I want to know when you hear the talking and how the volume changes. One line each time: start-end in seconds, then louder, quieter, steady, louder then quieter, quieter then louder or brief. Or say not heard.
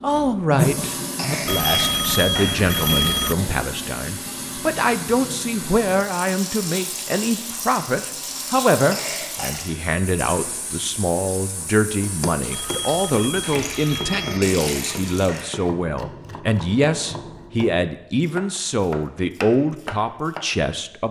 0.0-21.0 steady.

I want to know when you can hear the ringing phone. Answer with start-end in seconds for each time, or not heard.
1.4-3.4, 12.5-14.4.